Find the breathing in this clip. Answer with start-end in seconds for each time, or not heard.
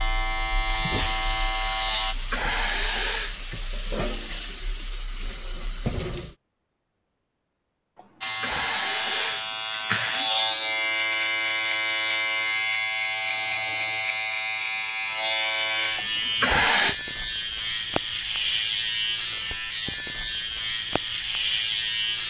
not heard.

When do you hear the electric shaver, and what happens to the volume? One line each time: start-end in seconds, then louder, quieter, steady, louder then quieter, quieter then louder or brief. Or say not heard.
0.0-2.1 brief
8.2-22.2 steady.